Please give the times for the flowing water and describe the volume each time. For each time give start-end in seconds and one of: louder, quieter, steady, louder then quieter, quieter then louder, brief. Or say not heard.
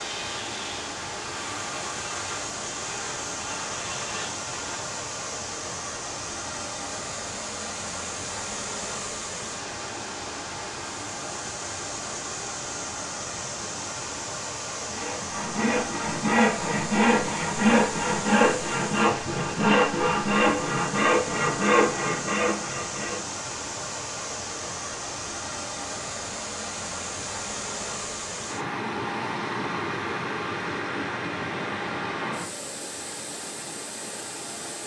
0.0-34.8 steady.